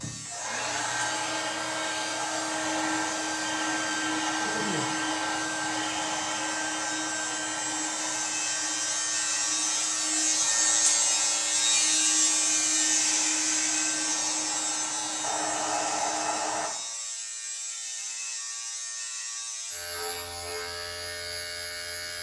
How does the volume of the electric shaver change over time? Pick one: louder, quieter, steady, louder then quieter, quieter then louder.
louder then quieter.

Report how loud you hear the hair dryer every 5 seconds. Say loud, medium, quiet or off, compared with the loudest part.
loud, loud, medium, loud, off.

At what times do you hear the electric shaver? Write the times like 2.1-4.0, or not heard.
0.0-22.1.